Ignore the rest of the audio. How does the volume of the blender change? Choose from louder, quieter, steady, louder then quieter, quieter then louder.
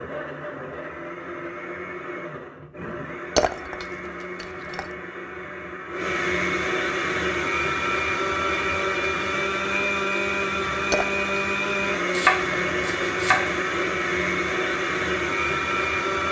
louder.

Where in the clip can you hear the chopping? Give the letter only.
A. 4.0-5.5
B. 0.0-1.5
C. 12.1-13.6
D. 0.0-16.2
C.